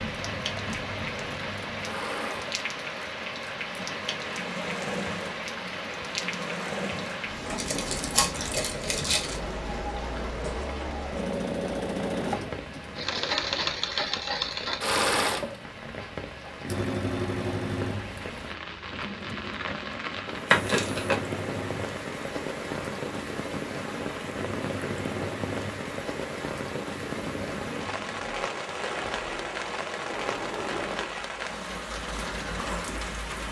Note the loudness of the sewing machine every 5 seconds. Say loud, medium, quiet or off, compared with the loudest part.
medium, medium, loud, loud, medium, medium, medium.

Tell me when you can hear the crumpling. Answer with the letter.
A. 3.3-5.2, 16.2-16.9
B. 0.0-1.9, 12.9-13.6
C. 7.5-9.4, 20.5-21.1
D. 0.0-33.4
C.